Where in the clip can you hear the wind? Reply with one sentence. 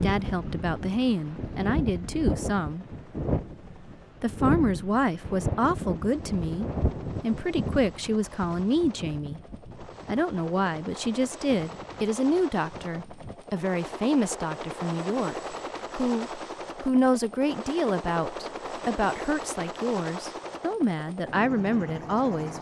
You can hear the wind from 0.0 to 13.4 s.